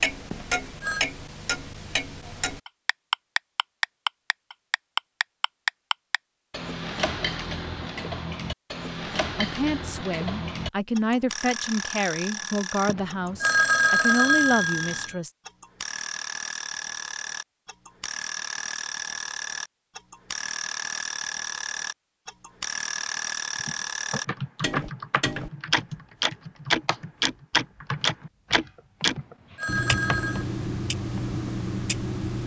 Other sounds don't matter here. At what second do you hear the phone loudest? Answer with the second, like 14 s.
14 s.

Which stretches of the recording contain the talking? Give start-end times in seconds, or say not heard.
9.3-15.3.